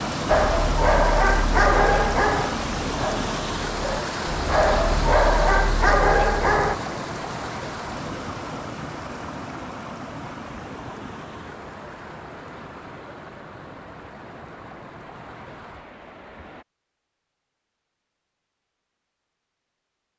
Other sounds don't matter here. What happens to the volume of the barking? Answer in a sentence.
The loudness of the barking goes down, then up.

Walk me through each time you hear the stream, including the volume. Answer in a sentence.
The stream can be heard from 0.0 to 16.6 s, getting quieter.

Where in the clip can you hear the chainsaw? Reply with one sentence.
You can't hear the chainsaw here.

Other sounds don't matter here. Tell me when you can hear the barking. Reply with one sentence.
The barking can be heard from 0.2 to 6.8 s.